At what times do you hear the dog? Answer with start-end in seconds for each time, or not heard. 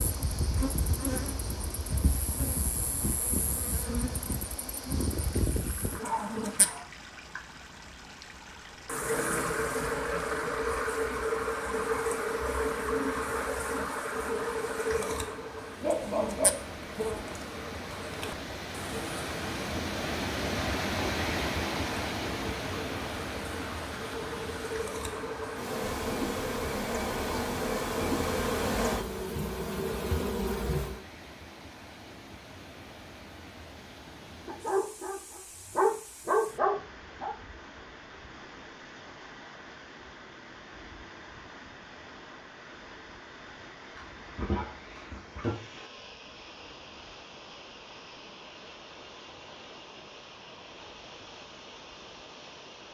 6.0-7.4, 15.8-17.4, 34.5-37.4, 44.0-45.5.